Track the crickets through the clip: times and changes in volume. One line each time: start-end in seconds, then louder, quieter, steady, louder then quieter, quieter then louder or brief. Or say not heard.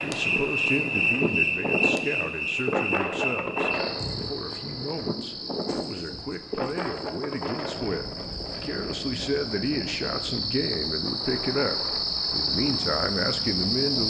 0.0-14.0 quieter then louder.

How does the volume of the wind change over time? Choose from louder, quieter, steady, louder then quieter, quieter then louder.
quieter.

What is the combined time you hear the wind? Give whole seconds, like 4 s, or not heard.
14 s.